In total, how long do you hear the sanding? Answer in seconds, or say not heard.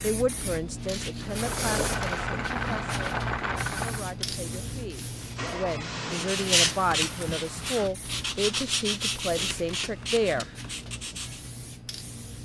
5 s.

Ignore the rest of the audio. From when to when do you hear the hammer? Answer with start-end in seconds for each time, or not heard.
not heard.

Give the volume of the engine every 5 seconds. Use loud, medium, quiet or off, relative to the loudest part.
loud, medium, off.